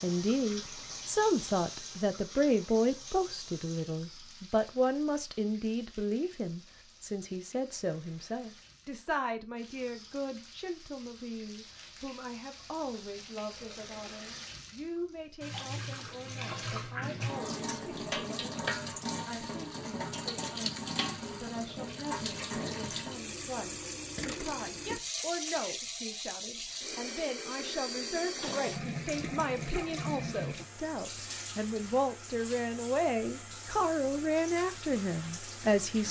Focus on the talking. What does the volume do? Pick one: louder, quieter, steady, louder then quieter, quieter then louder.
quieter then louder.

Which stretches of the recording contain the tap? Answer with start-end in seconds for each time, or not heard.
0.0-36.0.